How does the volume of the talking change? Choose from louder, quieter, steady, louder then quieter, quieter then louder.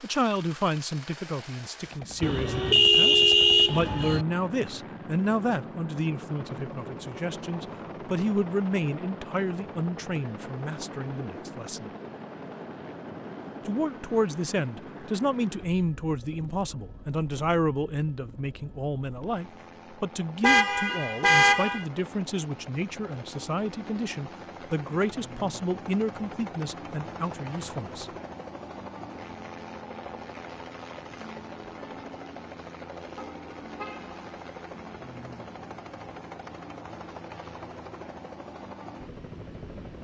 steady.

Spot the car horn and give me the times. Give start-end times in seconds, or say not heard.
2.2-4.2, 20.4-21.9, 33.1-34.2.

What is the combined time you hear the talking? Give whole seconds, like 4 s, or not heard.
26 s.